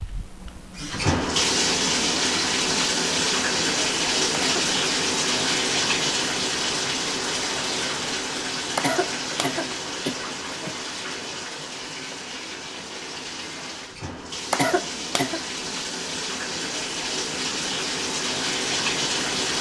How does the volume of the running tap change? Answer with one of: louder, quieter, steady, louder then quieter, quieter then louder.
quieter then louder.